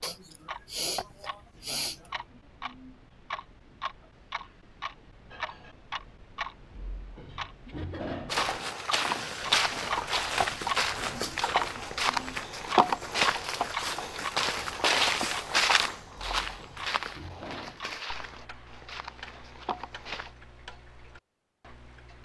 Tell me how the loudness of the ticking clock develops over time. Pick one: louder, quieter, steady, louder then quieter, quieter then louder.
louder then quieter.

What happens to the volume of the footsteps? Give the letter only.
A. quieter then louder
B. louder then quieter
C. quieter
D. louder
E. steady
C.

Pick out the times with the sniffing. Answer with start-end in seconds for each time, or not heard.
0.0-2.1.